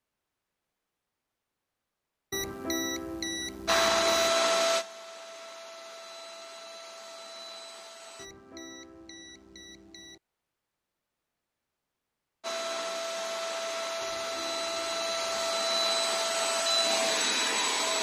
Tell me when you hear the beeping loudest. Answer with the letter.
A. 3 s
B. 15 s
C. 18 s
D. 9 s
A.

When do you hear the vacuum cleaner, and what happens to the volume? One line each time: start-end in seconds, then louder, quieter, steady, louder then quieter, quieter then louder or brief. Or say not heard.
3.6-8.2 quieter
12.4-17.9 louder.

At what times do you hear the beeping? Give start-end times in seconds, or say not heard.
2.3-4.3, 8.2-10.2, 14.0-15.6.